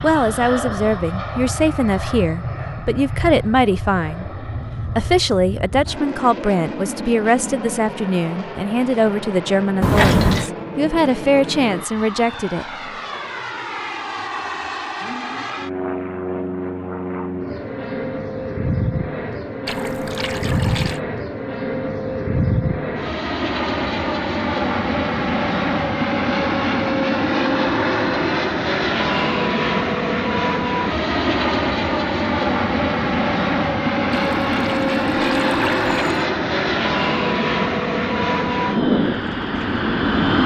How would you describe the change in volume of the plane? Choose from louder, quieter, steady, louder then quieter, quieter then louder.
louder.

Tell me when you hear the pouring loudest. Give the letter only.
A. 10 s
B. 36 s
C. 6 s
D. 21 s
A.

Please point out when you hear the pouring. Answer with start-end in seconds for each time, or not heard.
9.8-10.5, 19.6-21.0, 34.1-36.3.